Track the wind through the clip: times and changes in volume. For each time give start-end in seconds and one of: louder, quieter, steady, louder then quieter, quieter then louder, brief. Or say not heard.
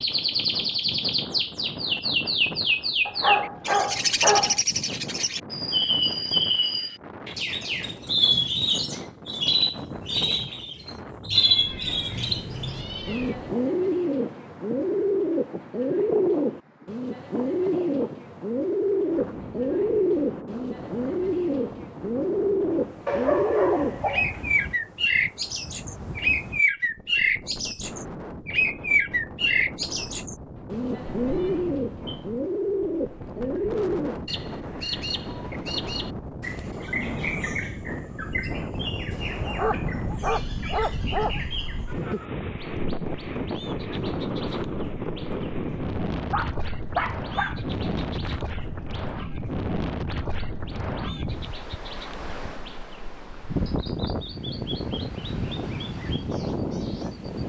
0.0-57.4 louder.